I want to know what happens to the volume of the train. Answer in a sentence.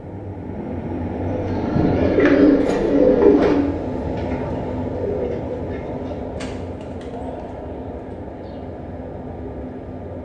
The volume of the train goes down.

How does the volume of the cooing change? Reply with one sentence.
The loudness of the cooing goes down.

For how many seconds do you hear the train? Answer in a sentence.
You can hear the train for 10 seconds altogether.